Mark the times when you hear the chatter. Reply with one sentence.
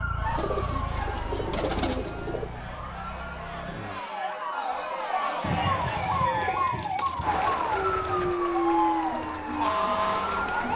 The chatter can be heard from 0.1 to 10.7 s.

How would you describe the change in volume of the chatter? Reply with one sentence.
The loudness of the chatter goes up.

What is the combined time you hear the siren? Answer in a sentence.
You can hear the siren for 11 seconds altogether.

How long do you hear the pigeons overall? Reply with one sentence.
You can hear the pigeons for 5 seconds altogether.